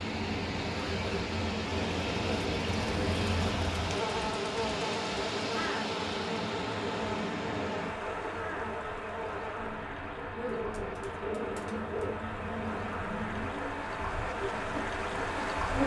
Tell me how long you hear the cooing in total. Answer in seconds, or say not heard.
2 s.